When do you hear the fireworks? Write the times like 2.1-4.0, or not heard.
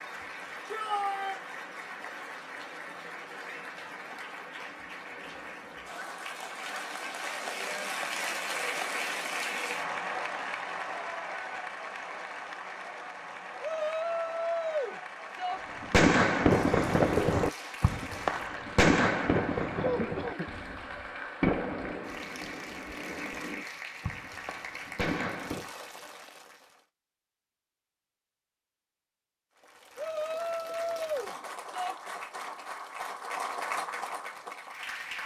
15.6-25.7.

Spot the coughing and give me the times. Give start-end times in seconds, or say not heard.
19.8-20.5.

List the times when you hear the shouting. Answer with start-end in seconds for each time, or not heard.
0.7-1.4, 13.6-15.6, 29.9-31.9.